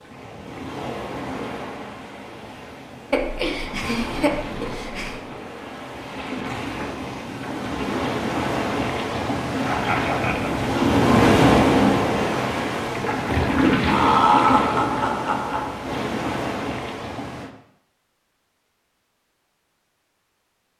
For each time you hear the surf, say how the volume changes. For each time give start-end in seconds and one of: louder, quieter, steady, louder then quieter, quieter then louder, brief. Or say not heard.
0.0-17.5 louder then quieter.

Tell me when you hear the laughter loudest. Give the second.
14 s.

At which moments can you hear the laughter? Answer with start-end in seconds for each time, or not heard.
3.1-5.2, 9.7-10.7, 13.9-15.7.